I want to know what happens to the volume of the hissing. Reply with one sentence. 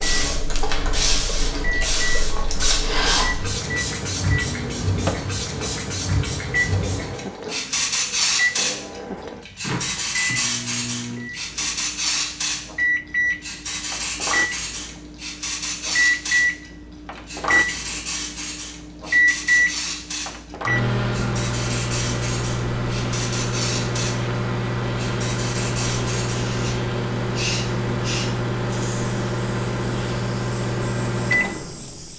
The loudness of the hissing goes down.